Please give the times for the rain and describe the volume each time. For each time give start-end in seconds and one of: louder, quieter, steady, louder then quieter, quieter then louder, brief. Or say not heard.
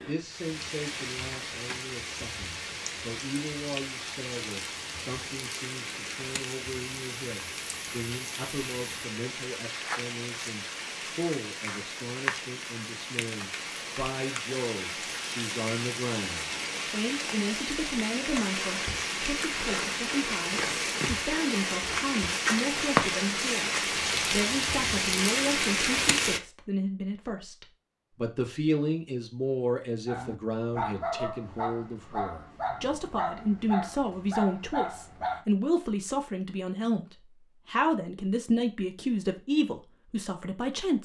0.0-26.4 louder.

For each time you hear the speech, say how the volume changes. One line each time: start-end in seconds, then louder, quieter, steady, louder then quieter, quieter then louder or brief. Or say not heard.
0.0-41.0 louder.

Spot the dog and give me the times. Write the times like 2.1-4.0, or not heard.
30.1-35.5.